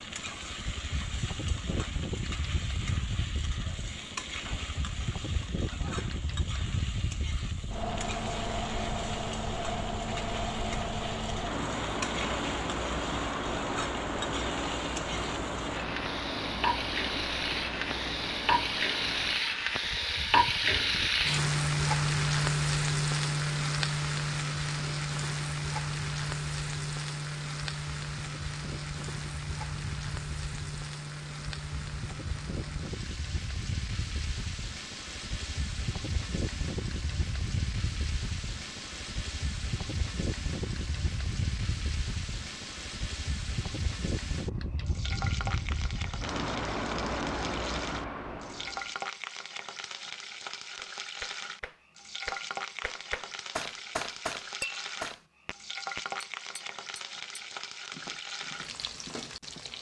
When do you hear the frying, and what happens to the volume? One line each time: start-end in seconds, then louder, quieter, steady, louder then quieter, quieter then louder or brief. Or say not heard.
0.0-59.7 louder then quieter.